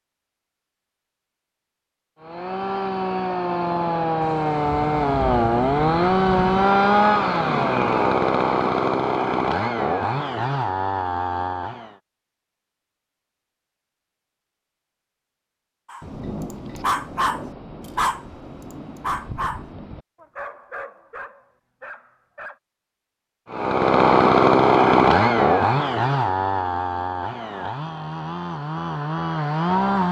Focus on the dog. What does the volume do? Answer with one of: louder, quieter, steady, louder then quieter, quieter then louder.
quieter.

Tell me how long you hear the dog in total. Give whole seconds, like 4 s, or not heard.
7 s.